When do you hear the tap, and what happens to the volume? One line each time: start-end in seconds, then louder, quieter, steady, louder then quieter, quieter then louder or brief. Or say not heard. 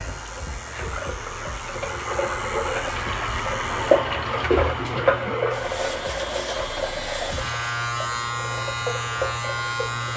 0.0-10.1 louder then quieter.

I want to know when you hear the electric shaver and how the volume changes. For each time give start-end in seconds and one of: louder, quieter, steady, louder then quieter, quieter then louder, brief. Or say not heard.
0.0-10.1 louder.